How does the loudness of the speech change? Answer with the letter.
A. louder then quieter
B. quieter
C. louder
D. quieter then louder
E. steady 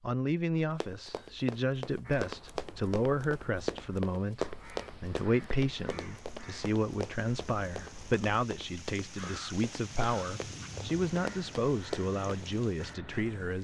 E.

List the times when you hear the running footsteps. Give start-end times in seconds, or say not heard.
0.8-12.4.